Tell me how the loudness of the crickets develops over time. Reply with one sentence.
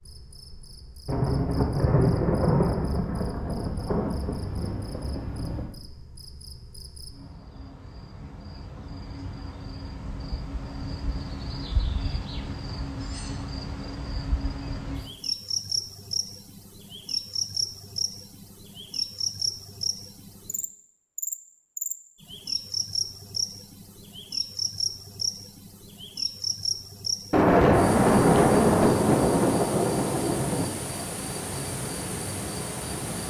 The loudness of the crickets goes up.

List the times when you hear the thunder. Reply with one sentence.
The thunder can be heard from 1.1 to 5.7 s and from 27.3 to 30.7 s.